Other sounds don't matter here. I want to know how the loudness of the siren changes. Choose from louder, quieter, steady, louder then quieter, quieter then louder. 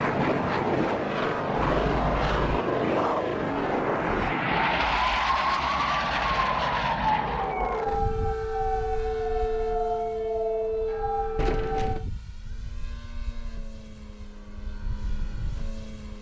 steady.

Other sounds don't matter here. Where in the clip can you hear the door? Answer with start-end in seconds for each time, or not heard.
1.6-2.6, 11.3-12.0.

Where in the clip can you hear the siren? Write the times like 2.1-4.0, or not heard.
4.5-12.1.